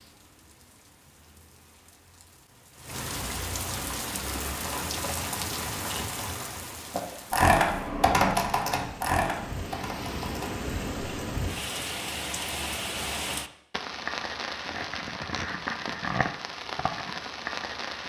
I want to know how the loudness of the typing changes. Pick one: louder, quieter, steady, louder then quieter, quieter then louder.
louder then quieter.